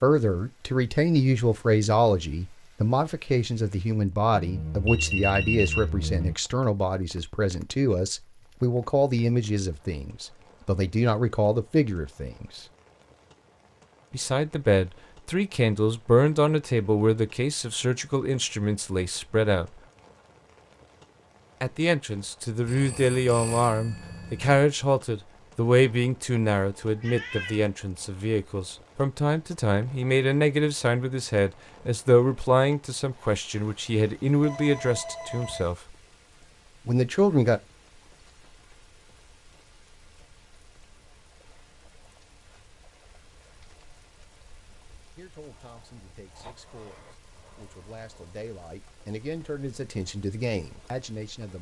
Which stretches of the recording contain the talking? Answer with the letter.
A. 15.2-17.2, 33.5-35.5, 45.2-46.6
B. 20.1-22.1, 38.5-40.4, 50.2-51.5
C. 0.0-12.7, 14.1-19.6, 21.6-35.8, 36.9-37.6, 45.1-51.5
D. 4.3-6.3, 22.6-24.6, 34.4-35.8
C.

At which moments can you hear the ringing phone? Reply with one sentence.
You can hear the ringing phone from 4.3 to 6.3 s, from 22.6 to 24.6 s and from 34.4 to 35.8 s.